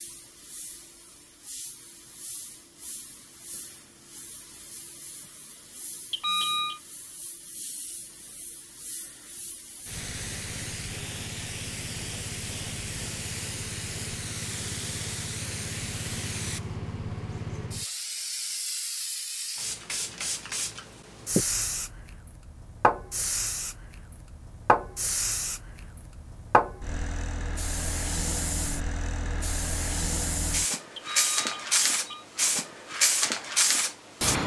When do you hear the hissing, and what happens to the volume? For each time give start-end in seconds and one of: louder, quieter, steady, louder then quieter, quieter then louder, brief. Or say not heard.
0.0-34.4 louder.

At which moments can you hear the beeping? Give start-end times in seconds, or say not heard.
6.1-6.8, 30.9-32.2.